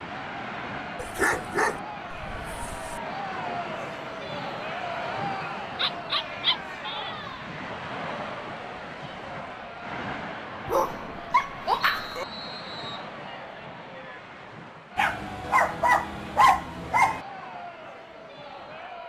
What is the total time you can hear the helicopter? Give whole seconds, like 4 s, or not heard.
not heard.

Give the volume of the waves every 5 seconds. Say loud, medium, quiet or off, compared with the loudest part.
loud, loud, loud, medium.